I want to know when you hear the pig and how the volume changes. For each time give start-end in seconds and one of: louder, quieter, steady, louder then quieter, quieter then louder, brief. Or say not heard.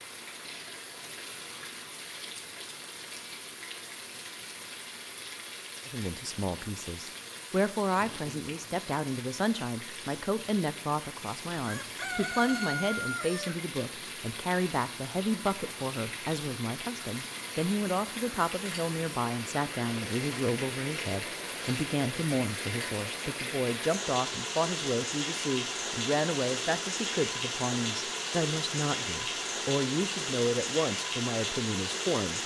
not heard.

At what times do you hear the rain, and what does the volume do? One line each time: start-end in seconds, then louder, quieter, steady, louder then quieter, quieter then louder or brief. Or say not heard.
0.0-32.4 louder.